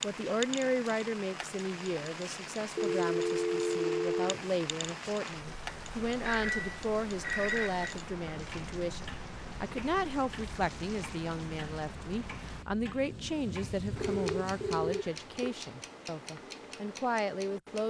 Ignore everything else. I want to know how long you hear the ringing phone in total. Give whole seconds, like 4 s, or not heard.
5 s.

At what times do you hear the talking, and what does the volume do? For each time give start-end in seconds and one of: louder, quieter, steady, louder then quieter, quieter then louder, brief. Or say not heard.
0.0-17.8 steady.